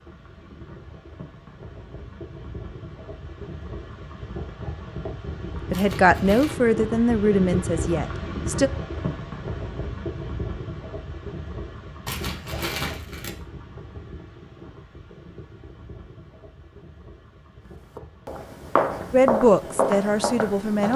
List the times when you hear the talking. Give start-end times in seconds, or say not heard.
5.7-8.7, 19.1-20.9.